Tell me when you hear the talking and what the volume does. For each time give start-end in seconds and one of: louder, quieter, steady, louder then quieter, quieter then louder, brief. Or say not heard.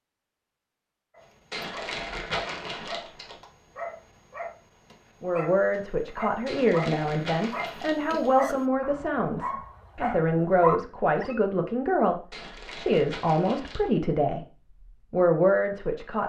5.2-14.4 steady
15.1-16.2 brief.